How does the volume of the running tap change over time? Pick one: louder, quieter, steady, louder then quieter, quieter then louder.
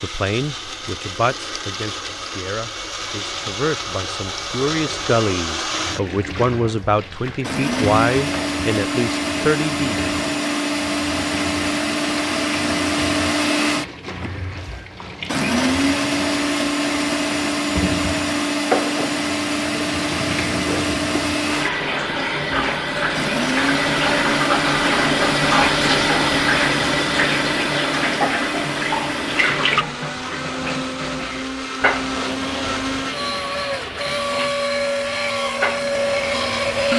louder then quieter.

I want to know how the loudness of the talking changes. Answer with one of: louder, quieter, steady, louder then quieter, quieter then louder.
louder.